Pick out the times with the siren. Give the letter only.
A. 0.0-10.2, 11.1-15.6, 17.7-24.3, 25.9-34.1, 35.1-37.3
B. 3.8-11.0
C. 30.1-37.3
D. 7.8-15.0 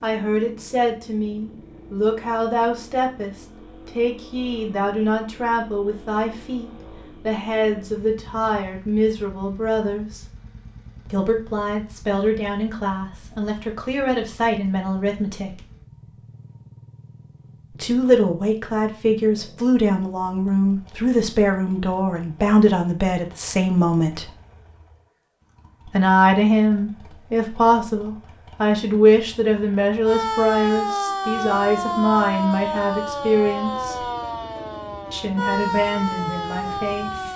C.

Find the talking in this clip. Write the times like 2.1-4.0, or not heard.
0.0-10.2, 11.1-15.6, 17.7-24.3, 25.9-34.1, 35.1-37.3.